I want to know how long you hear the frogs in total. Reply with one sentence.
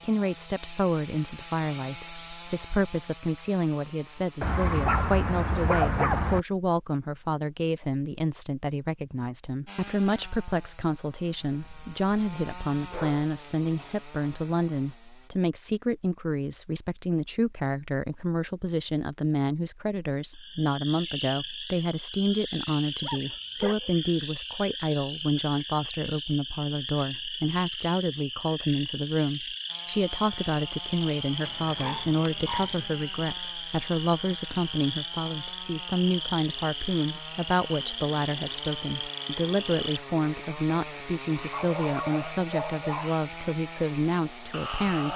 The frogs can be heard for 25 seconds in total.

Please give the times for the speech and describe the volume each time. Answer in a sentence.
The speech can be heard from 0.0 to 45.1 s, at a steady volume.